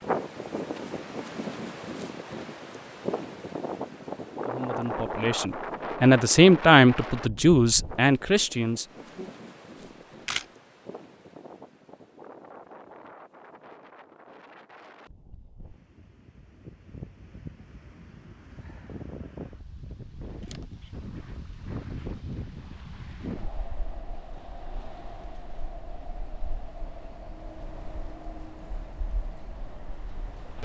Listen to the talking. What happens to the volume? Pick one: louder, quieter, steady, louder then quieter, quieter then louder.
louder then quieter.